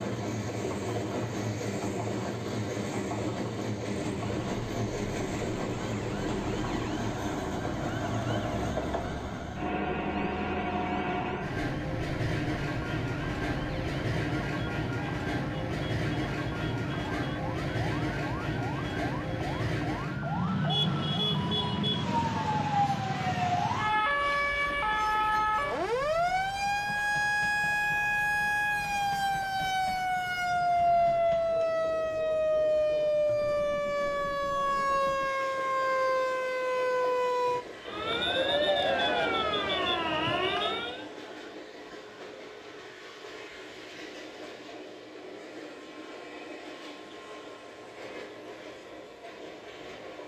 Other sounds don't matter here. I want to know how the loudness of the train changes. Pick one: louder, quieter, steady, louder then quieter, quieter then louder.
quieter.